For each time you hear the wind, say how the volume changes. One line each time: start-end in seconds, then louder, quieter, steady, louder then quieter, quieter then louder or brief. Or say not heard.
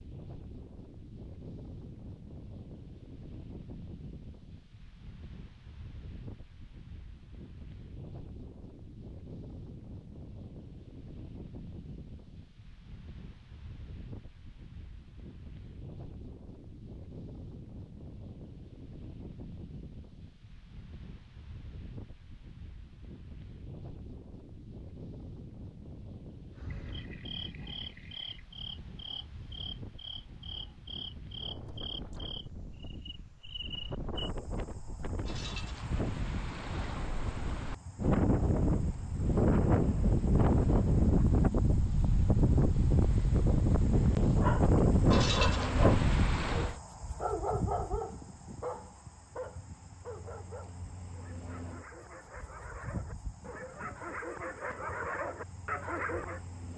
0.0-46.8 louder.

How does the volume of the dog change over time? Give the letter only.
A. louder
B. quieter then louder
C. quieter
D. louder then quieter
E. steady
B.